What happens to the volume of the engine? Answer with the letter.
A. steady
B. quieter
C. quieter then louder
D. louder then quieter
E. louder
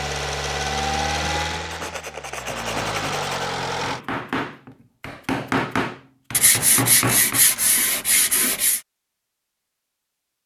C.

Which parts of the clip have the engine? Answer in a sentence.
The engine can be heard from 0.0 to 4.0 s.